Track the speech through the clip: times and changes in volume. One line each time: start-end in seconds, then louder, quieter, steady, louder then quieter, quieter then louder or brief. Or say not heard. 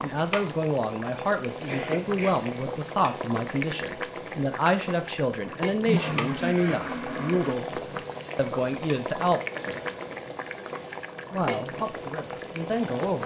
0.0-9.4 steady
11.3-13.2 brief.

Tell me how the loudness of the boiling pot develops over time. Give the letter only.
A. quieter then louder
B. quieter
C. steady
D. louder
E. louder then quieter
C.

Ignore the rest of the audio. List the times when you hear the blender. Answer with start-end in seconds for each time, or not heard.
5.8-7.5.